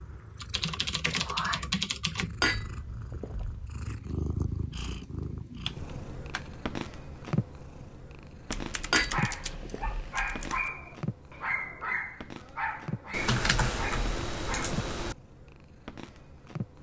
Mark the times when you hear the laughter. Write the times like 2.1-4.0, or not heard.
not heard.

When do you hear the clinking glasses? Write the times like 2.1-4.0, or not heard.
2.4-3.6, 8.9-10.1.